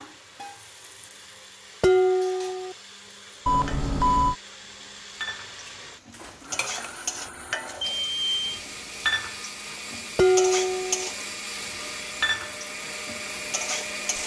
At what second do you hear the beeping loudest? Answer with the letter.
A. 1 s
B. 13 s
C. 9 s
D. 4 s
D.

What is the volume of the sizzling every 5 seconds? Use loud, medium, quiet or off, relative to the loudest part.
quiet, loud, loud.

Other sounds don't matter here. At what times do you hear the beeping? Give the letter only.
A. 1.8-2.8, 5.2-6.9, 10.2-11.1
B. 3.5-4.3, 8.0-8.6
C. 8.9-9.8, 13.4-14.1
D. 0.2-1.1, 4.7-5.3
B.